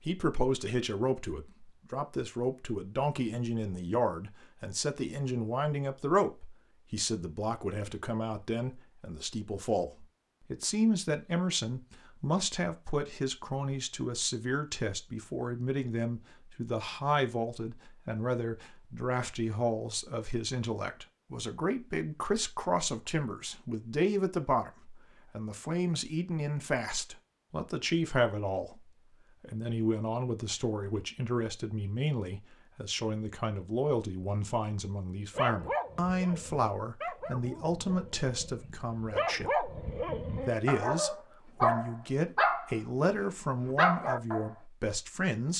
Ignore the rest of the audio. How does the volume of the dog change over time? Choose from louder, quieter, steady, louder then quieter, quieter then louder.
quieter then louder.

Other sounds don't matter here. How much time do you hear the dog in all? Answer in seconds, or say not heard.
9 s.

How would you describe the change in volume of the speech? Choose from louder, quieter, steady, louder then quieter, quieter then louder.
steady.